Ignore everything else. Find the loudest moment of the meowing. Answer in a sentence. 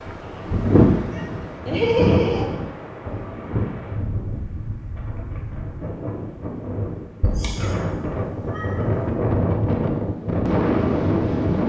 The loudest moment of the meowing is at 2 seconds.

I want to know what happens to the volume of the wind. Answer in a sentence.
The loudness of the wind goes down, then up.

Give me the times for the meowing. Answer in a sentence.
The meowing can be heard from 1.1 to 2.5 s and from 7.2 to 9.1 s.